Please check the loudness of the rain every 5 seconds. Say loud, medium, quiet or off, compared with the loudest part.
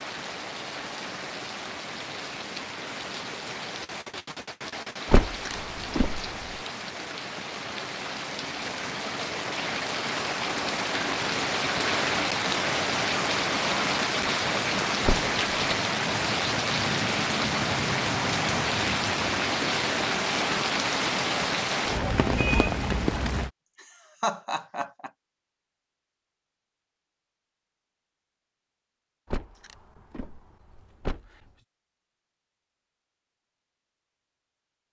medium, medium, loud, loud, loud, off, off.